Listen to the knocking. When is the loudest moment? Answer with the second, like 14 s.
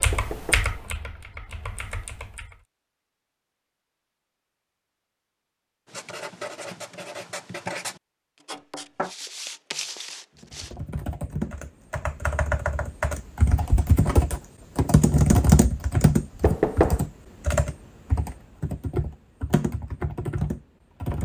17 s.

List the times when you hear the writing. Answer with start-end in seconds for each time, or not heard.
5.8-10.8.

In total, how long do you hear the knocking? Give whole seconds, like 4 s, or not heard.
2 s.